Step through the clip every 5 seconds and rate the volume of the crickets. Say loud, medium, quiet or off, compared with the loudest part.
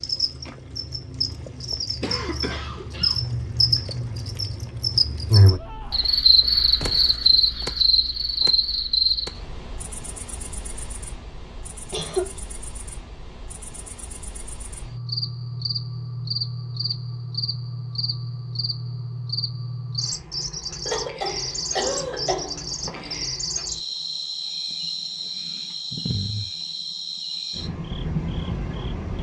medium, loud, quiet, medium, medium, medium.